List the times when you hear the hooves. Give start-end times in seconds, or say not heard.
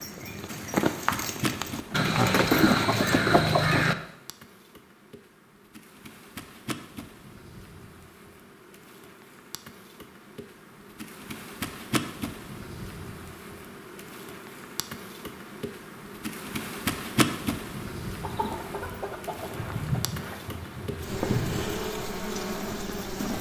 0.0-3.2, 18.2-23.3.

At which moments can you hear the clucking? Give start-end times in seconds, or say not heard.
1.9-4.0, 18.2-20.0.